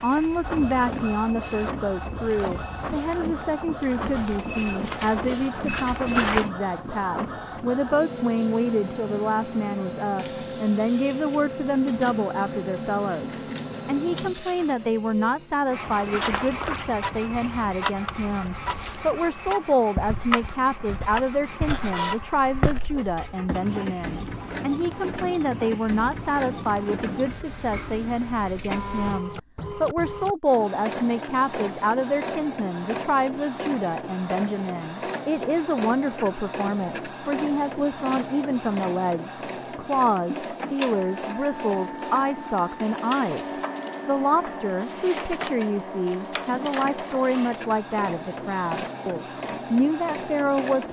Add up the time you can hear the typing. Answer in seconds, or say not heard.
not heard.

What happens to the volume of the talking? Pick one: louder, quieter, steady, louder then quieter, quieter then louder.
steady.